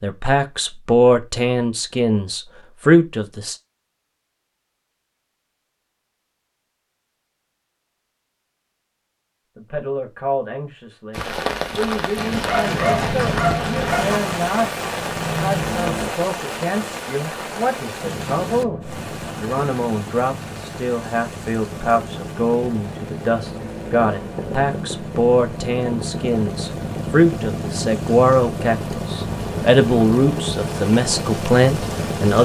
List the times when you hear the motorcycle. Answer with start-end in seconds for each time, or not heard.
12.7-16.1, 18.0-32.3.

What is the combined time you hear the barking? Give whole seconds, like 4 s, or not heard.
2 s.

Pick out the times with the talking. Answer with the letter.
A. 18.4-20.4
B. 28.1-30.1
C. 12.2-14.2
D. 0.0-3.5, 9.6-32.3
D.